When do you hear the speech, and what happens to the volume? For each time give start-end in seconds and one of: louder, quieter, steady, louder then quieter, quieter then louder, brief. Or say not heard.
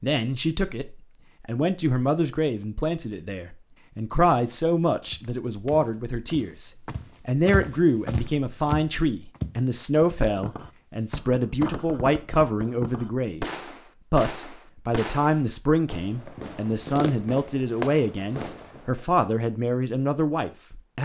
0.0-13.4 steady
14.1-21.0 steady.